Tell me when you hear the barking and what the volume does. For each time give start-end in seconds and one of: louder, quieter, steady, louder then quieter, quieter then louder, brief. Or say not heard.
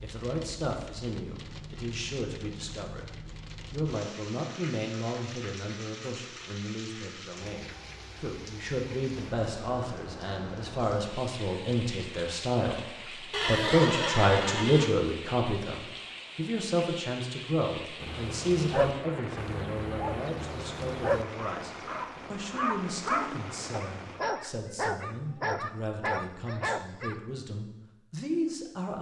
17.9-27.2 steady.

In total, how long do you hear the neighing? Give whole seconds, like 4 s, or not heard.
2 s.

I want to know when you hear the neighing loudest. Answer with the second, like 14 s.
14 s.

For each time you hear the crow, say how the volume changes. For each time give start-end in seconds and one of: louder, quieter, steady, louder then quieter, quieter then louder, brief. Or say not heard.
not heard.